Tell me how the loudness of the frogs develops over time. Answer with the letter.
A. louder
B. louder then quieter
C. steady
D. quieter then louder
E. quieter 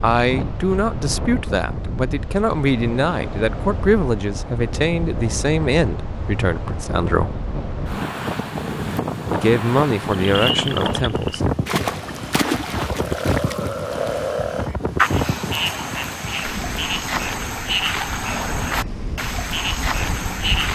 C.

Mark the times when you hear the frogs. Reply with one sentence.
You can hear the frogs from 10.3 to 20.7 s.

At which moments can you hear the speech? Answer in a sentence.
You can hear the speech from 0.0 to 7.3 s and from 9.3 to 11.6 s.